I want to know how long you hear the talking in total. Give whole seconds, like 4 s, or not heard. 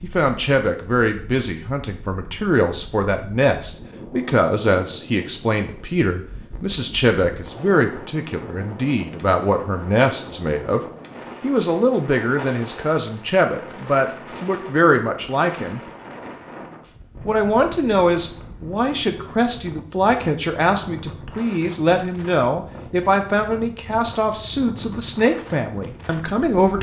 25 s.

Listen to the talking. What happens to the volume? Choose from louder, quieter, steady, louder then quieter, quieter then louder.
steady.